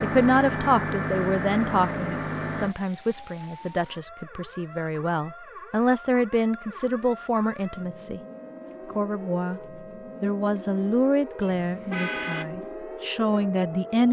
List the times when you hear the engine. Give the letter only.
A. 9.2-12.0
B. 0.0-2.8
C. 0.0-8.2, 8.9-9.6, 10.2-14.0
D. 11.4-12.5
B.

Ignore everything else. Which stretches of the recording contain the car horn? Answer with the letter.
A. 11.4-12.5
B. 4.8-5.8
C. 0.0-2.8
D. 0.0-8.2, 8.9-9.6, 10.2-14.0
A.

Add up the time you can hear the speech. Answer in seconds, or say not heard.
13 s.